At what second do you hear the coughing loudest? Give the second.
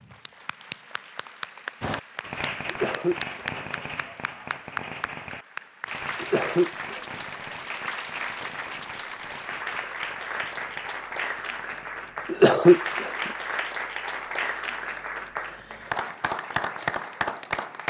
13 s.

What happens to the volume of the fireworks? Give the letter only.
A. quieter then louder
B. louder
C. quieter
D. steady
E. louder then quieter
C.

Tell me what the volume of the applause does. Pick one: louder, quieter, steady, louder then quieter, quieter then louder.
louder.